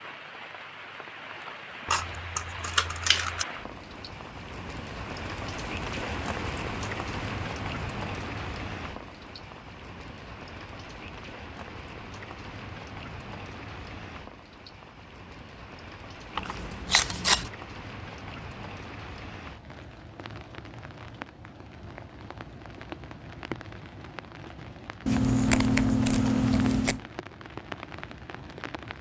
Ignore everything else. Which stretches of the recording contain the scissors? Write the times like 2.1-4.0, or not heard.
1.9-3.5, 16.4-17.5, 25.1-27.0.